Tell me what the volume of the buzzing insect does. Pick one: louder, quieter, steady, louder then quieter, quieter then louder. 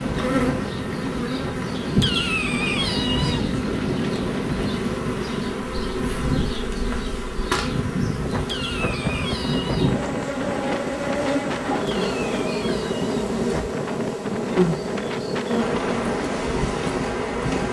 steady.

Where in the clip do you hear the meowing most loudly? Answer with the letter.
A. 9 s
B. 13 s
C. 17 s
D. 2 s
D.